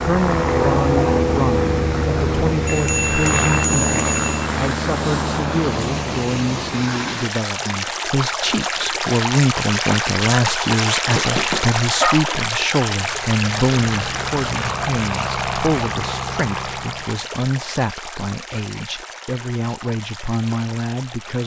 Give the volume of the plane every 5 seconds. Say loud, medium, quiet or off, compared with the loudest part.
loud, medium, medium, medium, off.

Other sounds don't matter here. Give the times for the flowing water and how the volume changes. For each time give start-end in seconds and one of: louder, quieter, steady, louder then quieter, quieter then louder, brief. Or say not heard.
0.0-21.4 louder then quieter.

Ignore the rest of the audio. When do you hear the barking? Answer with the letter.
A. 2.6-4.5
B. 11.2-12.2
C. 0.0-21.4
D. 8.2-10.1
B.